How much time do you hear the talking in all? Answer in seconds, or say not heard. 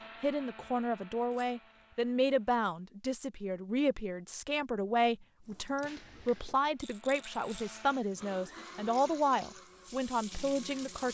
11 s.